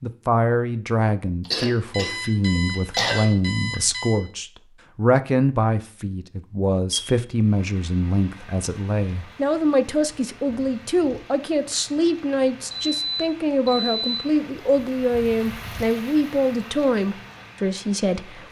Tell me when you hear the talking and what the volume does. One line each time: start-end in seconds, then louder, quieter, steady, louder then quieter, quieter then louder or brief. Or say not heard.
0.0-18.4 steady.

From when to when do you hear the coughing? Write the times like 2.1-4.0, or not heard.
1.4-3.4.